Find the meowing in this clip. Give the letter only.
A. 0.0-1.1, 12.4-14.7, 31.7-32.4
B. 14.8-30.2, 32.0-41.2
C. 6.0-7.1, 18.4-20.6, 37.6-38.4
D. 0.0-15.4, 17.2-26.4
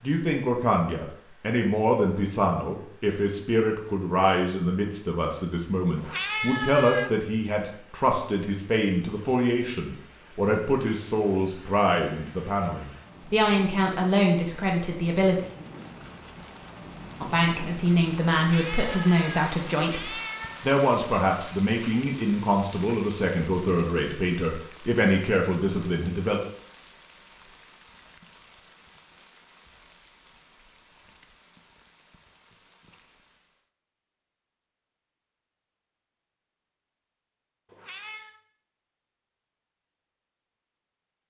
C.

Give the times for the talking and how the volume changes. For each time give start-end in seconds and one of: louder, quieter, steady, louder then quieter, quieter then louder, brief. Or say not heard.
0.0-15.4 steady
17.2-26.4 steady.